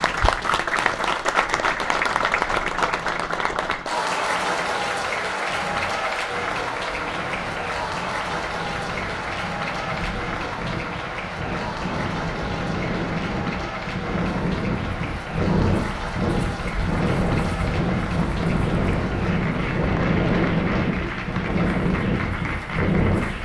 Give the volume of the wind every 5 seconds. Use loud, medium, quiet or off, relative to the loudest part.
quiet, quiet, medium, loud, loud.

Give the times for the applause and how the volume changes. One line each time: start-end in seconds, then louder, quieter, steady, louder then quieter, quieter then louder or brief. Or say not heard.
0.0-23.3 quieter.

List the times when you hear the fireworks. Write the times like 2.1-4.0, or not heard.
not heard.